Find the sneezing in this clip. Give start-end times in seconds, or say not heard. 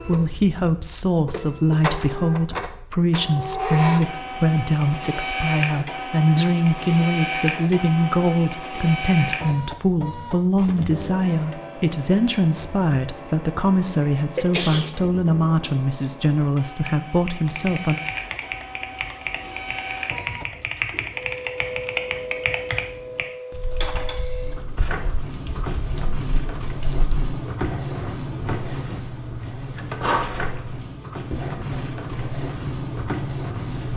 14.3-14.9.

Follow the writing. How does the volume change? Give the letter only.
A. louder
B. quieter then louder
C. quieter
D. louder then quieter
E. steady
E.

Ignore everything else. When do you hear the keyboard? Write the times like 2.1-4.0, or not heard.
16.8-27.3.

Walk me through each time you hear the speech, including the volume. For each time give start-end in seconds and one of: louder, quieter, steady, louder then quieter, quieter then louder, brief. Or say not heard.
0.0-17.9 steady.